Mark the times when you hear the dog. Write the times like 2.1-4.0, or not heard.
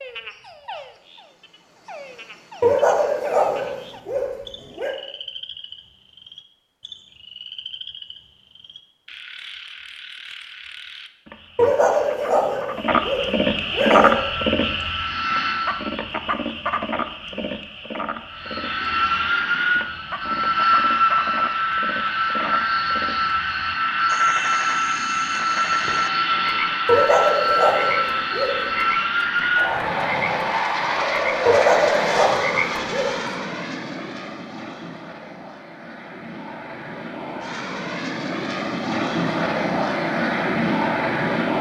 2.6-5.0, 11.6-14.2, 26.9-28.6, 31.4-33.2.